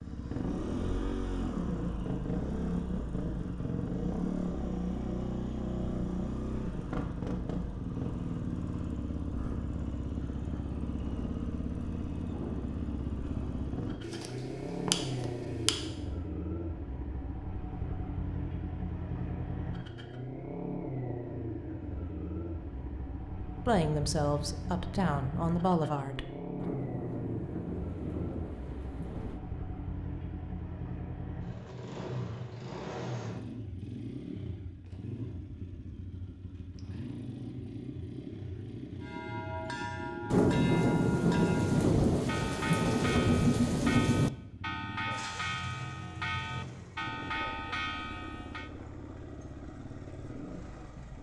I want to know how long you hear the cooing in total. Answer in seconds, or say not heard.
2 s.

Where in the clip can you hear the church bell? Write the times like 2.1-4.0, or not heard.
39.0-48.7.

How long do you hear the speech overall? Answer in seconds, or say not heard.
3 s.